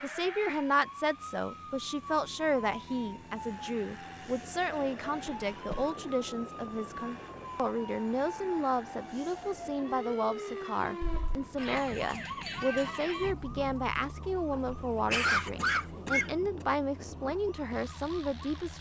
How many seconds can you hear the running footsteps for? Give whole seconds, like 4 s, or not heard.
not heard.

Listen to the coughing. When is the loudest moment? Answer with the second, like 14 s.
15 s.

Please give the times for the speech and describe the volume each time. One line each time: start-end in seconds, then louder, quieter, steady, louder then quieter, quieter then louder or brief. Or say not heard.
0.0-18.7 steady.